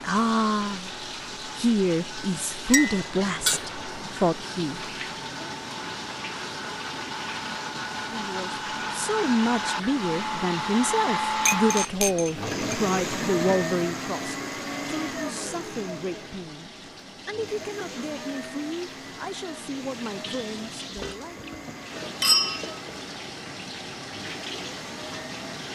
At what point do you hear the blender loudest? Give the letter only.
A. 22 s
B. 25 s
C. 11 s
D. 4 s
C.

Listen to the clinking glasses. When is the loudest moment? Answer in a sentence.
The volume of the clinking glasses peaks at 22 seconds.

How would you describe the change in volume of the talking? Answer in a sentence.
The volume of the talking goes down.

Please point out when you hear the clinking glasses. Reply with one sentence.
You can hear the clinking glasses from 2.7 to 3.7 s, from 11.4 to 12.8 s and from 20.9 to 22.9 s.